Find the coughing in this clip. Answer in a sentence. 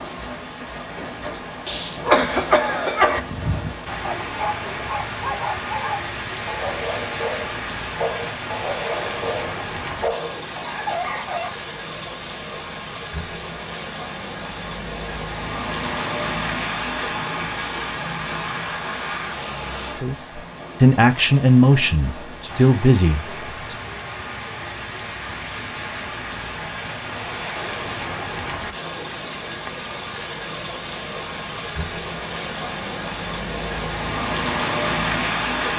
The coughing can be heard from 1.6 to 3.2 s.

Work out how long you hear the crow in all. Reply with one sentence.
You can't hear the crow here.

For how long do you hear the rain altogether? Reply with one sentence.
The rain can be heard for 36 seconds in total.